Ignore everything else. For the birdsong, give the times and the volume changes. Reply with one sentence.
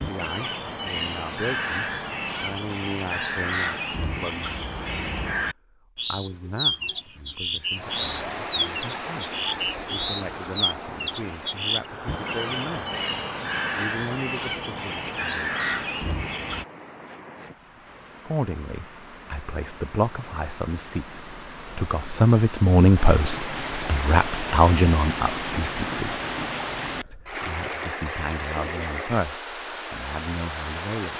The birdsong can be heard from 0.0 to 16.6 s, at a steady volume.